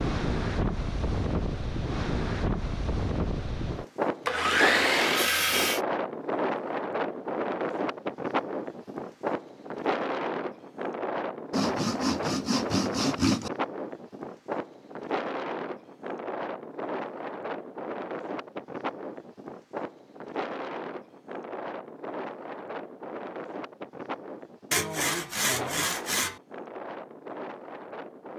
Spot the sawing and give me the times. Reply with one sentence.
The sawing can be heard from 4.2 to 5.8 s, from 11.5 to 13.5 s and from 24.7 to 26.4 s.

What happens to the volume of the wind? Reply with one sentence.
The volume of the wind goes down.